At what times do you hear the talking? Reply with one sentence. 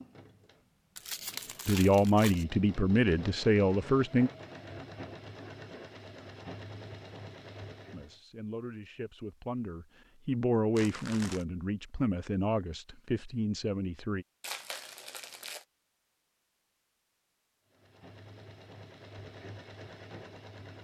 The talking can be heard from 1.6 to 4.3 s and from 7.9 to 14.2 s.